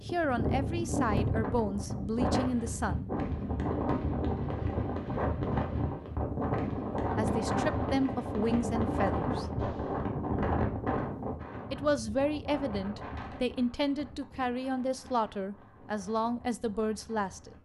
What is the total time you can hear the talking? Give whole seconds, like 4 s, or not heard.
11 s.